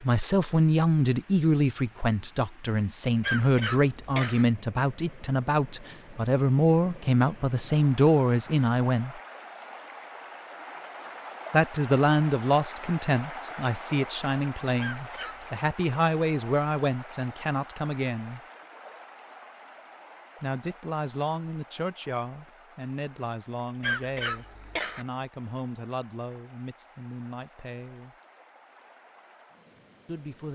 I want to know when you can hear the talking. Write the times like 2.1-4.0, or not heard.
0.0-9.2, 11.5-18.4, 20.4-28.1, 30.1-30.5.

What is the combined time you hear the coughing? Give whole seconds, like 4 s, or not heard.
3 s.